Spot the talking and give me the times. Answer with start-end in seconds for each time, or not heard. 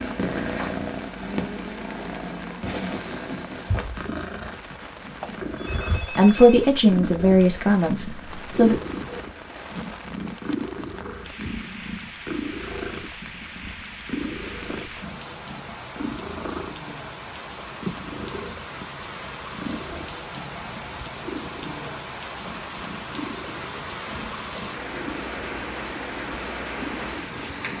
6.2-8.8.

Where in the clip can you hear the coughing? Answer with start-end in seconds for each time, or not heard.
not heard.